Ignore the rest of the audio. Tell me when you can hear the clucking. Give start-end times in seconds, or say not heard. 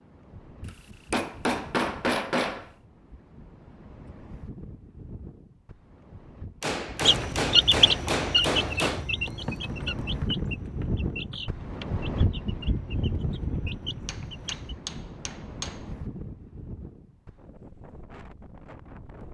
7.0-14.8.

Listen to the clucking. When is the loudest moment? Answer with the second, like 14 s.
8 s.